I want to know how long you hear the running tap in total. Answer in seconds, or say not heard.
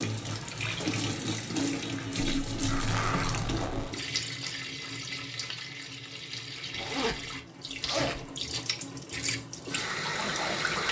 11 s.